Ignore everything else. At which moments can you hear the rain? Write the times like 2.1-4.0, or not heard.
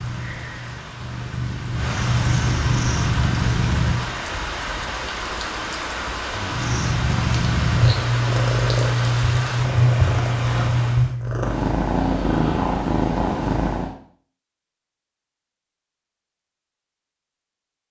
0.0-11.2.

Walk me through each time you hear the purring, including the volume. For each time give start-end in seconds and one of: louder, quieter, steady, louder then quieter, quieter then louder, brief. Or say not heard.
0.0-4.2 louder
6.5-13.9 steady.